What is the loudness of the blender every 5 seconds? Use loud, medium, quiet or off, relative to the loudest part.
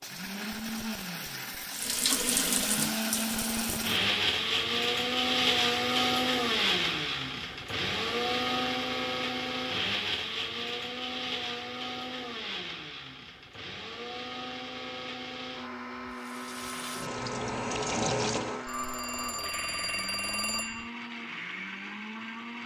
loud, loud, medium, medium, medium.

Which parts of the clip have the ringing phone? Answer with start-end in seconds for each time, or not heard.
18.6-20.9.